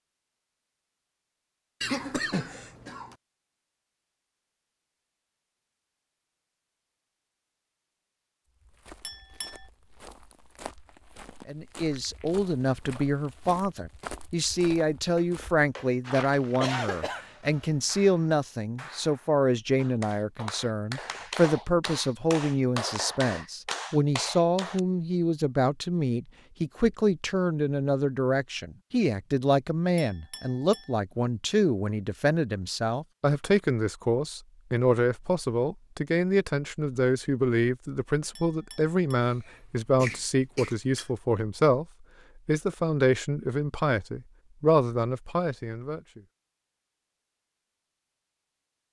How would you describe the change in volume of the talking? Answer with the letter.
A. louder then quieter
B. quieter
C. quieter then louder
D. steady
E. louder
D.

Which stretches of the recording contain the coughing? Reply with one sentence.
You can hear the coughing from 1.8 to 3.1 s, from 16.6 to 17.9 s and from 39.5 to 41.0 s.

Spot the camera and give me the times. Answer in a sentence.
You can't hear the camera here.